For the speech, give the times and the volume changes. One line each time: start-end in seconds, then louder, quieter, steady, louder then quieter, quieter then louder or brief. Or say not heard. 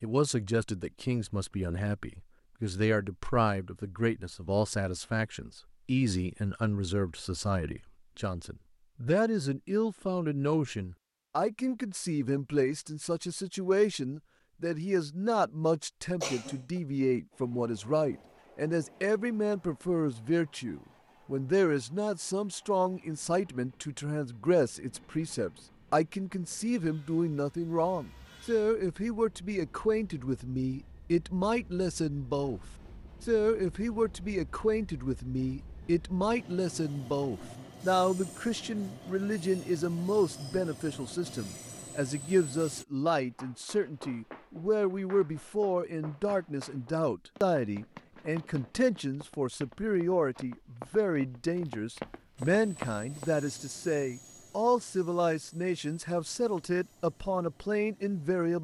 0.0-58.5 steady.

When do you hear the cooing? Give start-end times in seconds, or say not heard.
not heard.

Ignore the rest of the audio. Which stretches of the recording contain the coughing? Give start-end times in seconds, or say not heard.
16.2-16.8.